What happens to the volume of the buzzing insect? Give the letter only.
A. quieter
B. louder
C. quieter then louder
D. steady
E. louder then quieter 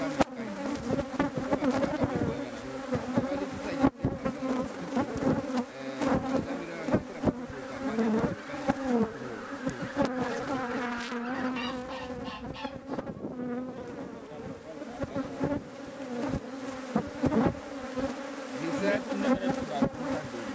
C.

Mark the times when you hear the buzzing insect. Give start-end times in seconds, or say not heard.
0.0-20.4.